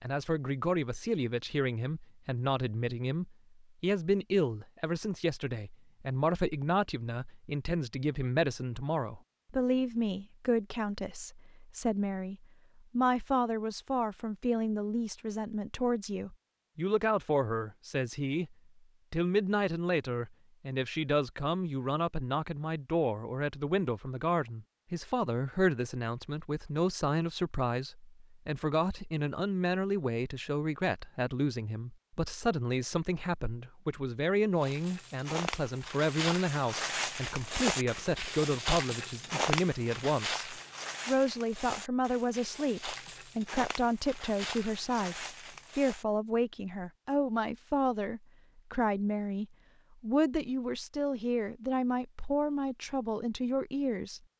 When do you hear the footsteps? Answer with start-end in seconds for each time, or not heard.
34.6-46.0.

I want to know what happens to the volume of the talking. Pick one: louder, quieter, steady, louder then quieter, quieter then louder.
steady.